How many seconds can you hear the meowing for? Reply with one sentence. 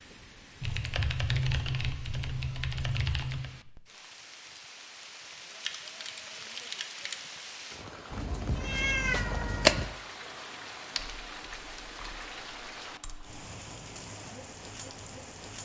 The meowing can be heard for 2 seconds in total.